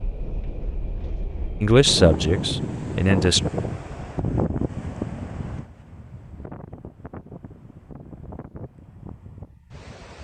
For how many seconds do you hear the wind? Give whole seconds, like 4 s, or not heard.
10 s.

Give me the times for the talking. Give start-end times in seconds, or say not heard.
1.6-3.4.